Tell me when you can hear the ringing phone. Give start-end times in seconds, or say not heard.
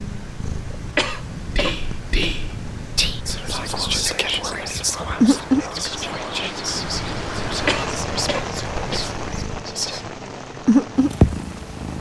not heard.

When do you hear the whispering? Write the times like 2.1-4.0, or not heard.
1.6-10.1.